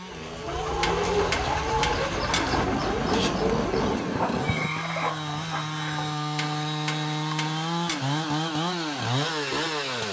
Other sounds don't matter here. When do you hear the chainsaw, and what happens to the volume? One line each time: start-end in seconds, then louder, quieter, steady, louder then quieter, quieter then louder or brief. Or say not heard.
0.0-10.0 louder.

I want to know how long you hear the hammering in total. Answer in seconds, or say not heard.
4 s.